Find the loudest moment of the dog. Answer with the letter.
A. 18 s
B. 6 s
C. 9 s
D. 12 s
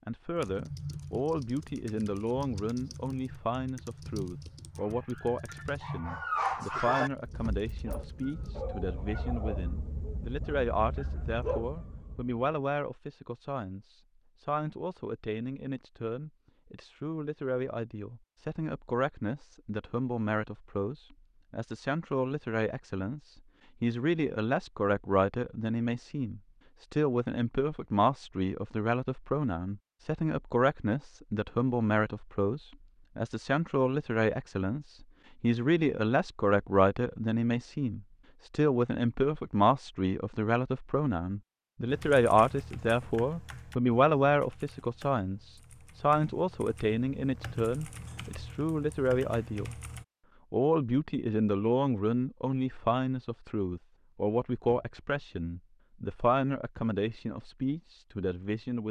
B.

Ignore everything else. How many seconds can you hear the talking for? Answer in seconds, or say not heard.
58 s.